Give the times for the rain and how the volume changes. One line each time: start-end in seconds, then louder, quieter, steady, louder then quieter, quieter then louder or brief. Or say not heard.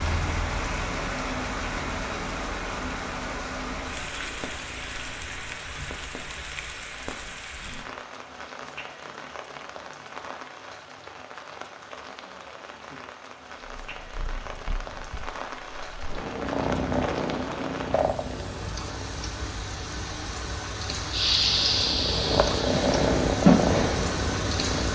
0.0-24.9 quieter then louder.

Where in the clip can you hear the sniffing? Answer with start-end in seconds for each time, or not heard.
21.1-23.1.